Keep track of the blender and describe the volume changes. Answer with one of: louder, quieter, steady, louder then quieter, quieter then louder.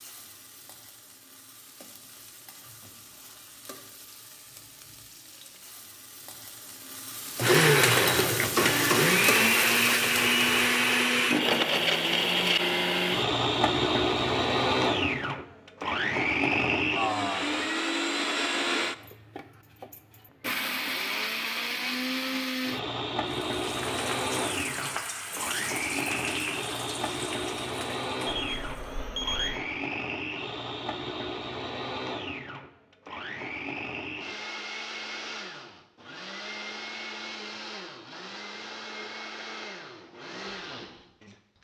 quieter.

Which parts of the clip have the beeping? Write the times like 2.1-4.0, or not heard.
28.2-29.6.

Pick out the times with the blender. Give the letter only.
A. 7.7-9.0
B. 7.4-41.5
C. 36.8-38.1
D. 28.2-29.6
B.